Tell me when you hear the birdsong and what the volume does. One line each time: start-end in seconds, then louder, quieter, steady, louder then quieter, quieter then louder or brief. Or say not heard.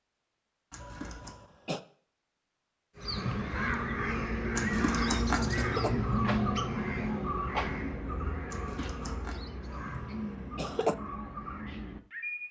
3.0-12.4 quieter.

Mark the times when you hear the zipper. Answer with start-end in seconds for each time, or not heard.
0.7-1.4, 4.5-5.4, 8.4-9.4.